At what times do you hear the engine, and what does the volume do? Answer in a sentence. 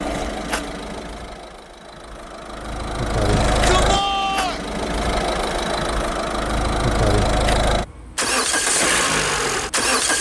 The engine can be heard from 0.0 to 10.1 s, getting louder.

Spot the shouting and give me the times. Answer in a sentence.
You can hear the shouting from 3.2 to 4.7 s.